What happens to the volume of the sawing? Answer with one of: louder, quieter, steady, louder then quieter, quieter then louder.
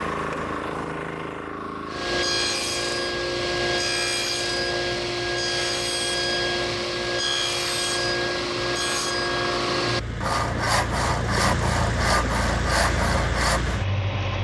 steady.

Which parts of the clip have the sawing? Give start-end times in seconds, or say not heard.
1.9-13.8.